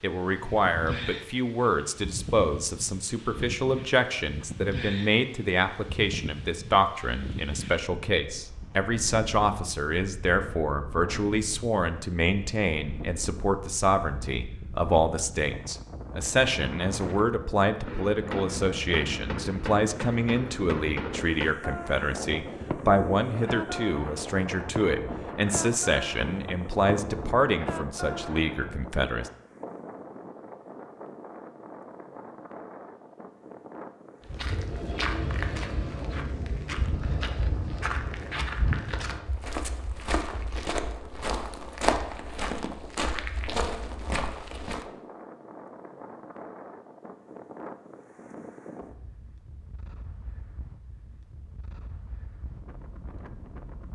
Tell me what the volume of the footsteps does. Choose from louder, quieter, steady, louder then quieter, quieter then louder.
steady.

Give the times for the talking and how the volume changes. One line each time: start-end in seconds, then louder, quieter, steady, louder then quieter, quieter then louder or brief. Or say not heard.
0.0-29.3 steady.